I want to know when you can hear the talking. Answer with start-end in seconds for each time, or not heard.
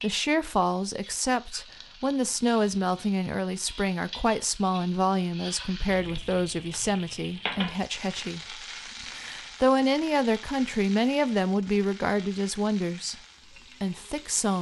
0.0-13.2, 13.8-14.5.